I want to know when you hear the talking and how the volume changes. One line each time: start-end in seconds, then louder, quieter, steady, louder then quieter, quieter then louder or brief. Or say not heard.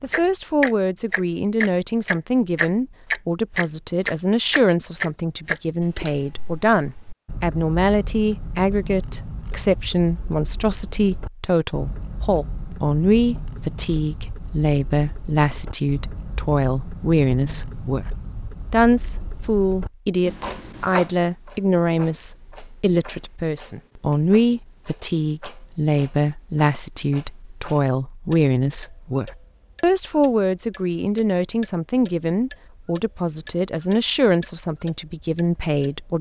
0.0-36.1 steady.